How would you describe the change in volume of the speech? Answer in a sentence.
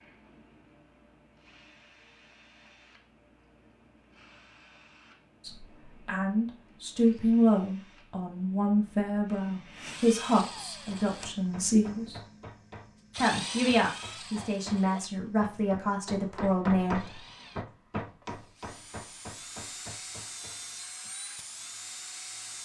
The loudness of the speech stays about the same.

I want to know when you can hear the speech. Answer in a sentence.
You can hear the speech from 5.4 to 12.2 s and from 13.2 to 17.1 s.